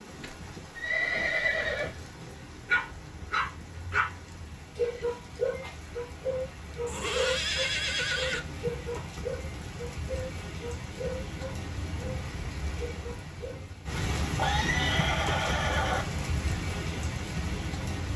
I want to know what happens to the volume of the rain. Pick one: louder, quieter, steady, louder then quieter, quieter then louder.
louder.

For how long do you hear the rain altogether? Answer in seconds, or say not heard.
18 s.